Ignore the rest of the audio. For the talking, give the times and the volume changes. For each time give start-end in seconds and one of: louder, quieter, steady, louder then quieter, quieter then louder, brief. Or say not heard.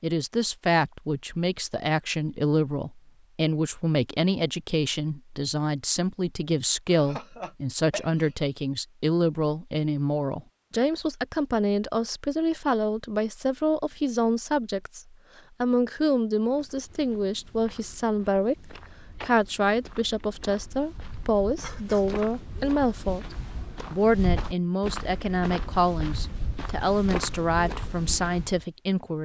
0.0-29.2 steady.